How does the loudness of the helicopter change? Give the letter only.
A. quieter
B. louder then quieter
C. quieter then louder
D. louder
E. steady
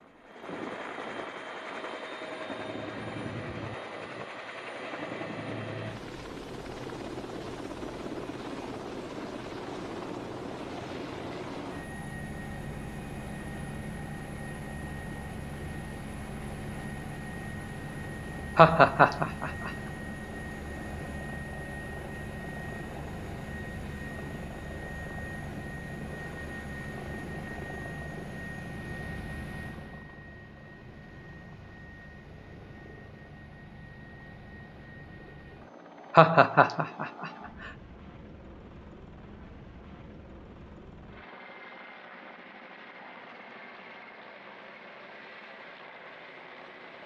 A.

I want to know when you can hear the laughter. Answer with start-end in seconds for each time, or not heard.
18.6-19.7, 36.1-37.7.